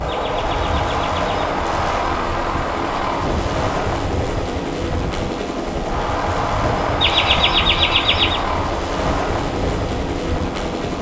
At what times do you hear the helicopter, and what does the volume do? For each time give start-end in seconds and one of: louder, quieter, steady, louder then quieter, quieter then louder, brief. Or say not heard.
0.0-10.9 steady.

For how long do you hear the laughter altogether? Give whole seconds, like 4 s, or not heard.
3 s.